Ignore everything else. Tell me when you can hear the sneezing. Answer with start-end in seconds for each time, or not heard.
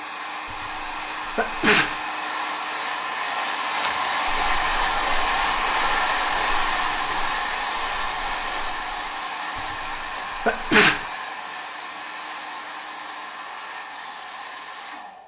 0.5-1.9, 9.6-11.1.